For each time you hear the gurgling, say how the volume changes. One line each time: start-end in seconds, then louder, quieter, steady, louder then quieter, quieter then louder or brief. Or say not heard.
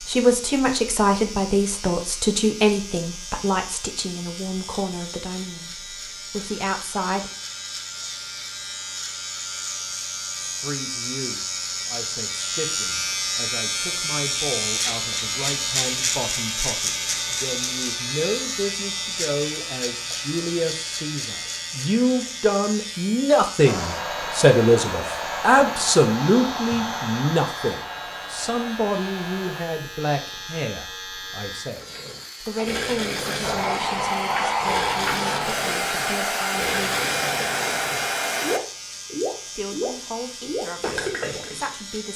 31.7-41.8 steady.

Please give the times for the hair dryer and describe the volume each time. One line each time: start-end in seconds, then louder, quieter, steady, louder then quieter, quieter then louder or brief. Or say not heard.
23.6-29.6 quieter
33.4-38.6 steady.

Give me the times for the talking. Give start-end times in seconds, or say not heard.
0.0-7.3, 10.4-36.9, 39.5-42.1.